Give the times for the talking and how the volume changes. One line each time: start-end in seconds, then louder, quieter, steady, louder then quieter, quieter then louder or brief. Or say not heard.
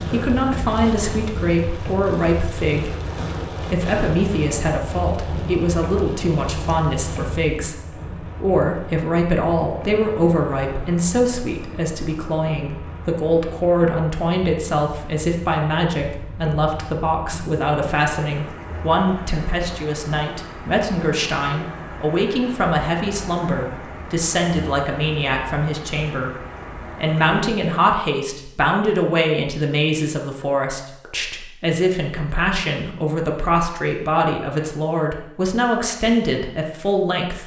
0.0-37.4 steady.